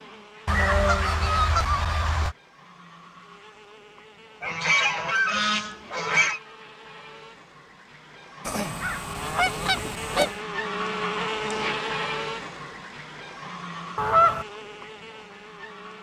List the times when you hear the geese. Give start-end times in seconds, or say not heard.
0.5-2.4, 4.4-6.4, 8.4-10.3, 13.9-14.4.